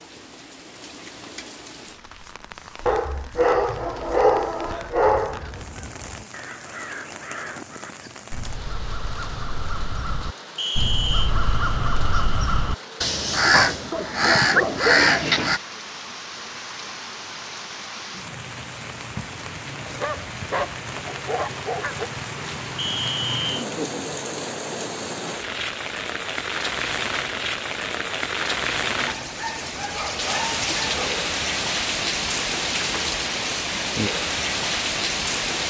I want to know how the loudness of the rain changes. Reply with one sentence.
The loudness of the rain goes up.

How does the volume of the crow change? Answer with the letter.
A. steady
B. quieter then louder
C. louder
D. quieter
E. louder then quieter
C.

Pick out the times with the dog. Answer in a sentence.
The dog can be heard from 2.9 to 5.5 s, from 13.9 to 15.2 s, from 19.9 to 22.1 s and from 29.3 to 31.1 s.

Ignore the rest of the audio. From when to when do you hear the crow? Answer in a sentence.
The crow can be heard from 5.0 to 15.6 s.